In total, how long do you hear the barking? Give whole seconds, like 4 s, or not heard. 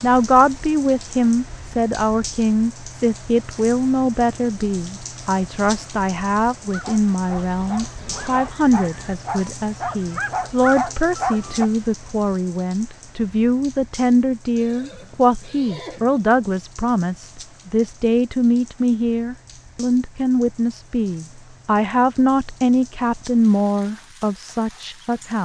5 s.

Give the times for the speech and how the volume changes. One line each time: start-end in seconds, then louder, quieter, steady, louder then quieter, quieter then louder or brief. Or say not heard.
0.0-25.4 steady.